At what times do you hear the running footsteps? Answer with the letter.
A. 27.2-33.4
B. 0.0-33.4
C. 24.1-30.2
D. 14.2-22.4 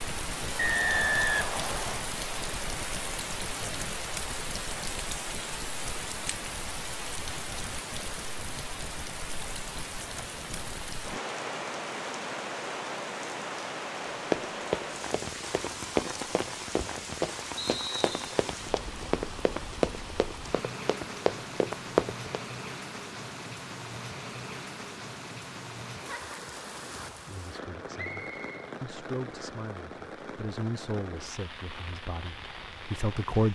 D.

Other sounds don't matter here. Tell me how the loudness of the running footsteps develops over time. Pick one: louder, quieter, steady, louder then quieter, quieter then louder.
quieter then louder.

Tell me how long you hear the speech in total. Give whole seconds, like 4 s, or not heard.
6 s.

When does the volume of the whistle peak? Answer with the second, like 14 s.
1 s.